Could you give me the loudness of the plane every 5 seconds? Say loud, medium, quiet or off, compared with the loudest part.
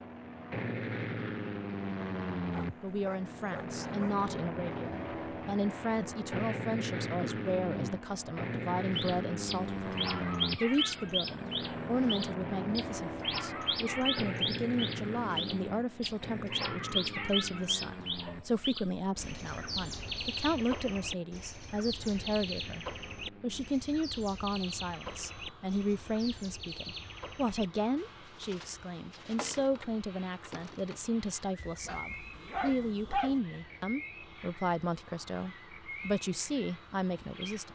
loud, loud, loud, medium, quiet, quiet, quiet, quiet.